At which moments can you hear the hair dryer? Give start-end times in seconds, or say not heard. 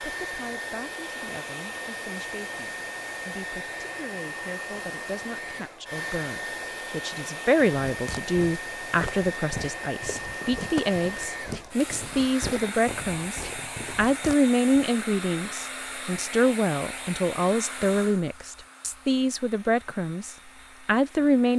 0.0-21.5.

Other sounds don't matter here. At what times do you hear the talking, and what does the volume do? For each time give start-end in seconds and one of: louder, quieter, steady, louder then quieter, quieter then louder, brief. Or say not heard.
0.0-21.5 louder.